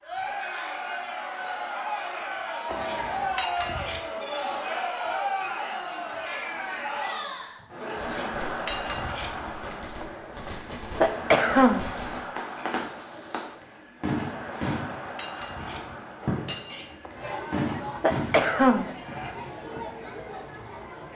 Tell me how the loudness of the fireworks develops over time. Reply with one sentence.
The volume of the fireworks goes up.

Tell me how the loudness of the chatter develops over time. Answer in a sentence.
The loudness of the chatter goes down.